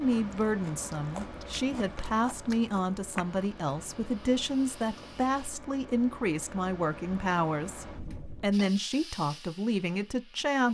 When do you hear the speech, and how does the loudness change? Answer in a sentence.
The speech can be heard from 0.0 to 10.6 s, at a steady volume.